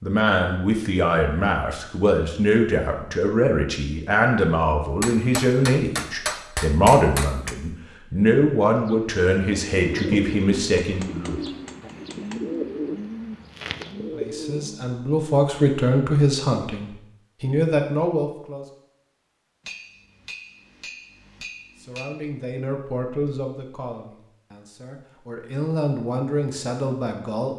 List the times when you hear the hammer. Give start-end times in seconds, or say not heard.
5.0-7.5, 9.9-12.4, 19.6-22.1.